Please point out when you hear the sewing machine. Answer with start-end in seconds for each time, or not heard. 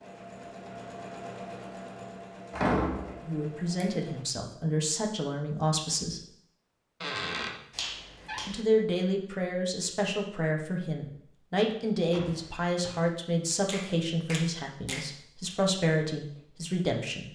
0.0-4.2.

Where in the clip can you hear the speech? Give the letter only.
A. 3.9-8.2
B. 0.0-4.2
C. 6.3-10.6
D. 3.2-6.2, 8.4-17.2
D.